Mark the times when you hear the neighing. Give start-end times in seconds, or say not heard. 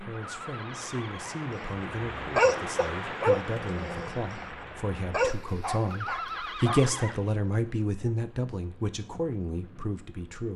0.1-1.4, 5.9-7.4.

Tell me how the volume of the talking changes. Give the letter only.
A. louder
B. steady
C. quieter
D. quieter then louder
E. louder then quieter
E.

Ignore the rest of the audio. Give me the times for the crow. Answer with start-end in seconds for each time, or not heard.
not heard.